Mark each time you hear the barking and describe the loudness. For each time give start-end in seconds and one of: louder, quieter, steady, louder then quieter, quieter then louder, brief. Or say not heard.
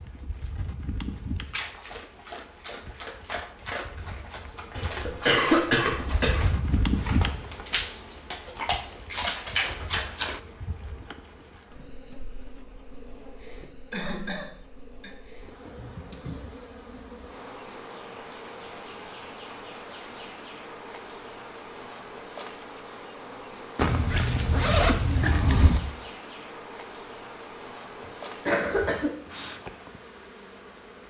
1.4-10.4 louder.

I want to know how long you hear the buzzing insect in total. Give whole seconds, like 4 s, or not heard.
31 s.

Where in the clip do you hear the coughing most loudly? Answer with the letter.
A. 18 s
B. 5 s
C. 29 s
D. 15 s
B.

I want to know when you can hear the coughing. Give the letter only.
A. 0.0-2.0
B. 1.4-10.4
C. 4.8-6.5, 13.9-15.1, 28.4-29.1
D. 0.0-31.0
C.